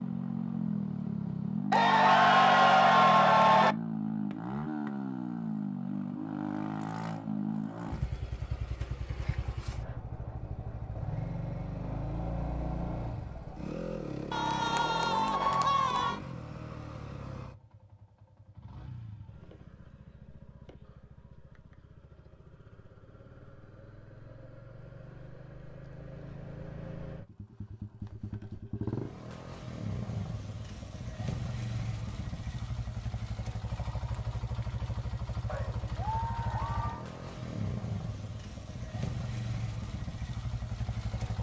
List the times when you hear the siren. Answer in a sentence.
You can't hear the siren here.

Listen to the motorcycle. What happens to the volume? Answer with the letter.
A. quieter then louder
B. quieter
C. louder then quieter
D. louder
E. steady
A.